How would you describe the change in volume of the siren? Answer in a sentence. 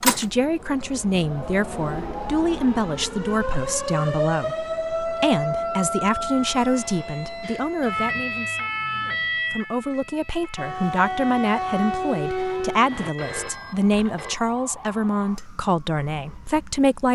The loudness of the siren goes up, then down.